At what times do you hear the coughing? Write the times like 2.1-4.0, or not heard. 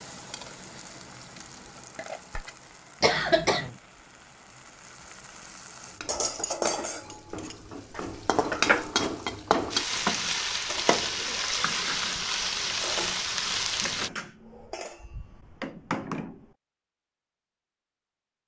3.0-3.7.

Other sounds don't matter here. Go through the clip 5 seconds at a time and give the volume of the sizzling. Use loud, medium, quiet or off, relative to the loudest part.
quiet, loud, loud, off.